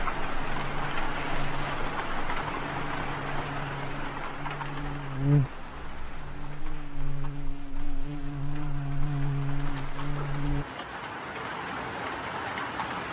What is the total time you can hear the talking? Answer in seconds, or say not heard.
not heard.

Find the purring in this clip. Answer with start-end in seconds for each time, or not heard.
not heard.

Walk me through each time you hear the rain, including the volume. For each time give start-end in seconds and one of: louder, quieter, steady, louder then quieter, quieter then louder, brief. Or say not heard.
0.0-13.0 quieter then louder.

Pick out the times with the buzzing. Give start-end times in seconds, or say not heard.
0.0-10.7.